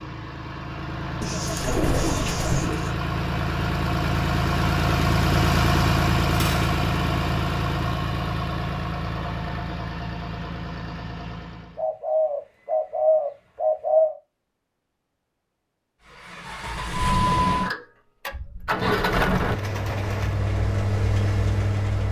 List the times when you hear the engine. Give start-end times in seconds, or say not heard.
0.0-11.8, 16.1-22.0.